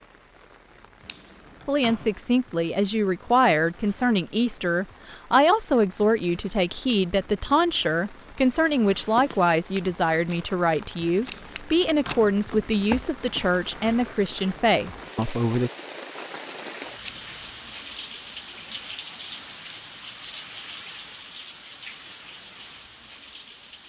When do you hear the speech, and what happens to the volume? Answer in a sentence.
The speech can be heard from 1.6 to 15.7 s, at a steady volume.